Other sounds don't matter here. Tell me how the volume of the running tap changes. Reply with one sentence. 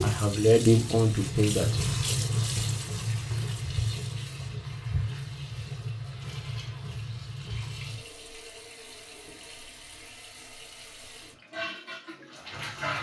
The volume of the running tap goes down.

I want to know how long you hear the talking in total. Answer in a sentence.
You can hear the talking for 2 seconds altogether.